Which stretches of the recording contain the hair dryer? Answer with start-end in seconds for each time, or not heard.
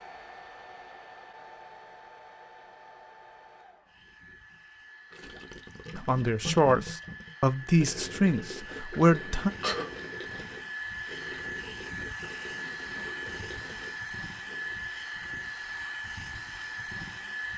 0.0-17.5.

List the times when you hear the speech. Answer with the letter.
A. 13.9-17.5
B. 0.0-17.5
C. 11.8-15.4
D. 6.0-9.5
D.